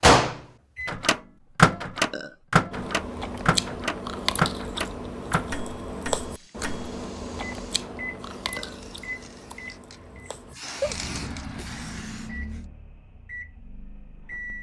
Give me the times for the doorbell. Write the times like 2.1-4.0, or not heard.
not heard.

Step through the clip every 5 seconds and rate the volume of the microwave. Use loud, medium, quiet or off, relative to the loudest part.
loud, quiet, quiet.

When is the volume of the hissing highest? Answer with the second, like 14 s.
11 s.